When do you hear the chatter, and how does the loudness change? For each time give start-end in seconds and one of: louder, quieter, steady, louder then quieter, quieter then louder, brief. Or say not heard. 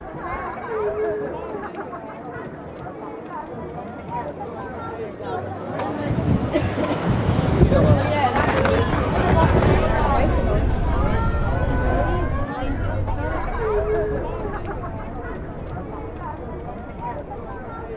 0.0-17.9 louder then quieter.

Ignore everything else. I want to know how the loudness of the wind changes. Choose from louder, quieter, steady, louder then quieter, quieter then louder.
quieter.